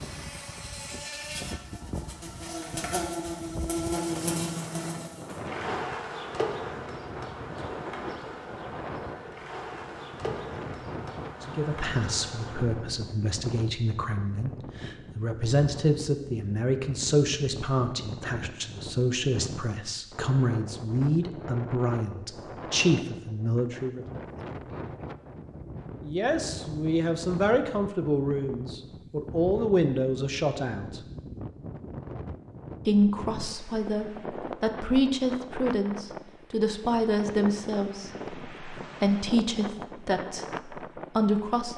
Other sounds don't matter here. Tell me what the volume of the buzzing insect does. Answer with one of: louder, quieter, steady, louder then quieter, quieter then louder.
louder then quieter.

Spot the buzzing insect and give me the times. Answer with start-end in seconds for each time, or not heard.
0.0-12.8.